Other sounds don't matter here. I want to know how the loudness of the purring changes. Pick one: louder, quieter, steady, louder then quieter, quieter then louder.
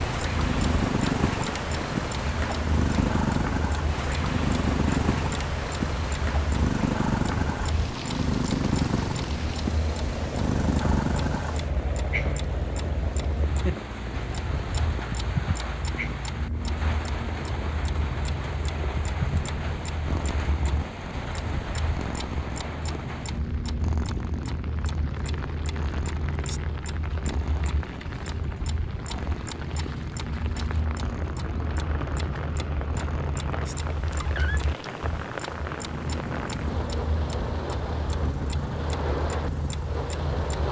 quieter.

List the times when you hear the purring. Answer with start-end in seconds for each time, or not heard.
0.0-40.6.